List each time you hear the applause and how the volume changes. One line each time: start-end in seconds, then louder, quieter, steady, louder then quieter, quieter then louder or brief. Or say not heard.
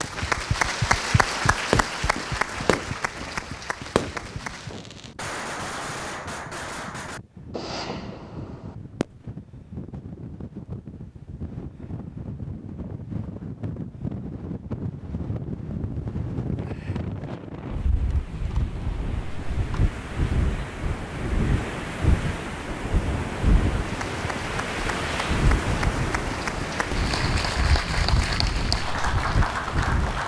0.0-4.8 quieter
23.8-30.2 louder.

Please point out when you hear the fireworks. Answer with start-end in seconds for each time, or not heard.
1.5-9.1.